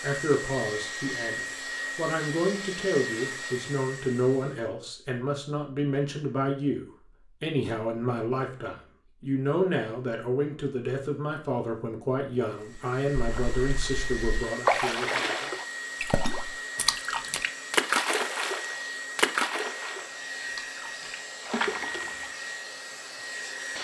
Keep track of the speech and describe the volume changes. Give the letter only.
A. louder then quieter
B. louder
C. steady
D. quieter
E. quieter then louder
C.